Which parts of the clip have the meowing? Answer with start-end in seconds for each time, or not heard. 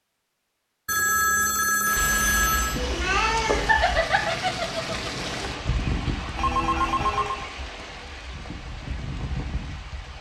2.0-4.0.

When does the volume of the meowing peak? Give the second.
3 s.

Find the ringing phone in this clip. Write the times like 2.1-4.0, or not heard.
0.8-2.8, 6.3-7.5.